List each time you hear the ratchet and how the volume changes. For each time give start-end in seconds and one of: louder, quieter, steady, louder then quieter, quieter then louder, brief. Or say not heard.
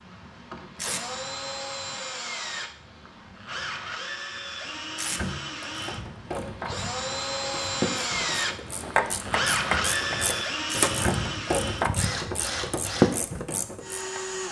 5.6-14.2 louder.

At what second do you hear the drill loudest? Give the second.
10 s.